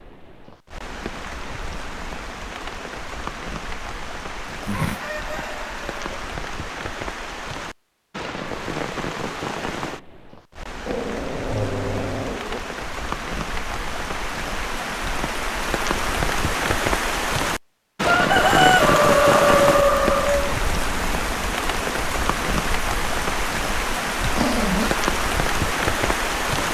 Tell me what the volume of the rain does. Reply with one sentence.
The volume of the rain goes up.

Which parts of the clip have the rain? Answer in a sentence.
The rain can be heard from 0.0 to 26.7 s.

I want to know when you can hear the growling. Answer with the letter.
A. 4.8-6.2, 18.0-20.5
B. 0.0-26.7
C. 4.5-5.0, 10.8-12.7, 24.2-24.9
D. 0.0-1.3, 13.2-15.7
C.